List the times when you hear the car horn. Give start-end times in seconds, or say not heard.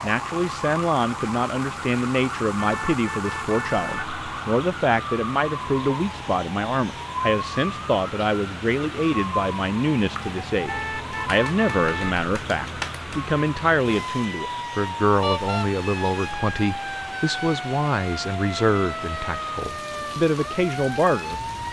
2.5-4.2, 10.7-12.2, 15.2-15.7.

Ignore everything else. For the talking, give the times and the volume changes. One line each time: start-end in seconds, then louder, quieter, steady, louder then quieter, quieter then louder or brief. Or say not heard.
0.0-21.6 steady.